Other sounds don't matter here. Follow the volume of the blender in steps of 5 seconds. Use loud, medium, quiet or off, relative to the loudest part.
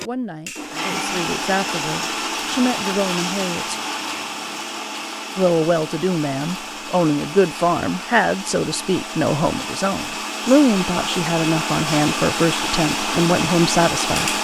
loud, medium, loud.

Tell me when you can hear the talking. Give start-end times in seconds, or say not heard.
0.0-3.8, 5.3-14.3.